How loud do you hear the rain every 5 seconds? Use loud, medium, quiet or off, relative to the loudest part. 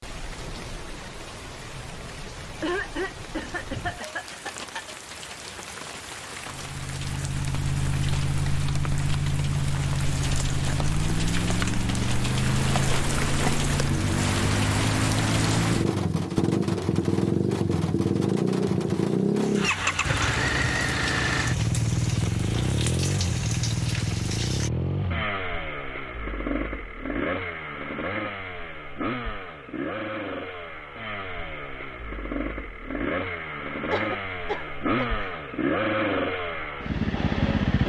medium, medium, loud, loud, medium, off, off, off.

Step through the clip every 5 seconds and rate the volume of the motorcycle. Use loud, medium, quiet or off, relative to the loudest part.
off, loud, loud, loud, loud, medium, medium, loud.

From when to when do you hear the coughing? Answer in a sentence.
The coughing can be heard from 2.6 to 5.0 s and from 33.9 to 35.2 s.